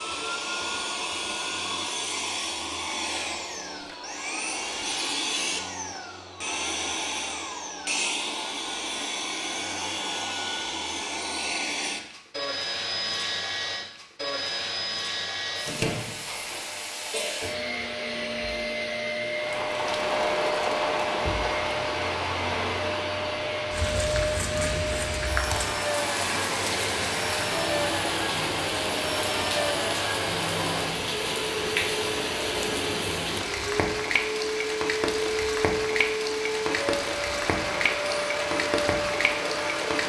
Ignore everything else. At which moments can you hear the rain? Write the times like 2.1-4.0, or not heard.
19.3-40.0.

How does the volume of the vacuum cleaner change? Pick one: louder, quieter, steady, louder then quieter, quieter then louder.
steady.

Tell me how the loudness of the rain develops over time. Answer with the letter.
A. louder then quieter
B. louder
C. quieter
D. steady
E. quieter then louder
D.